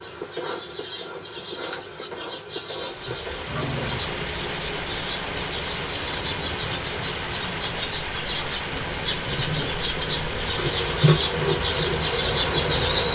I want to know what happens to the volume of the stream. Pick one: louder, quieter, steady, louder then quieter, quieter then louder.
steady.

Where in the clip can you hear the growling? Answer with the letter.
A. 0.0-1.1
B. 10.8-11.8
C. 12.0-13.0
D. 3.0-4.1
D.